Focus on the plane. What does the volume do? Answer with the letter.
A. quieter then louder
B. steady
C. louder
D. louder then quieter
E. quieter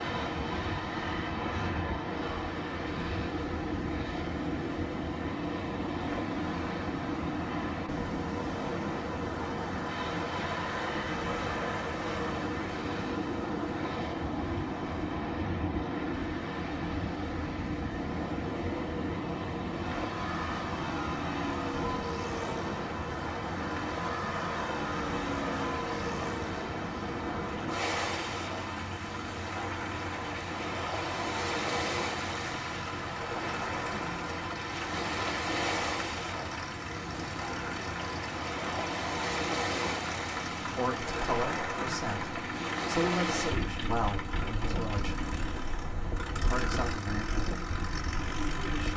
B.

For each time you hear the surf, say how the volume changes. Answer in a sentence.
You can hear the surf from 0.0 to 48.9 s, at a steady volume.